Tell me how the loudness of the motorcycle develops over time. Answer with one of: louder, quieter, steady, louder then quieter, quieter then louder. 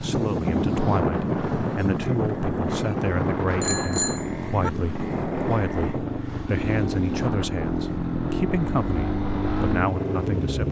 louder.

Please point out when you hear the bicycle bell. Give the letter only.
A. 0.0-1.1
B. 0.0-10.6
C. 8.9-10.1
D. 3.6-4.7
D.